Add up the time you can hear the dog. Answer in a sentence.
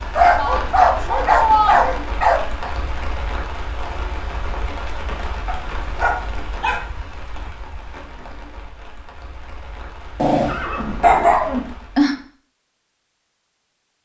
You can hear the dog for 6 seconds altogether.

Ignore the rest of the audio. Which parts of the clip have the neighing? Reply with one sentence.
You can hear the neighing from 10.4 to 11.6 s.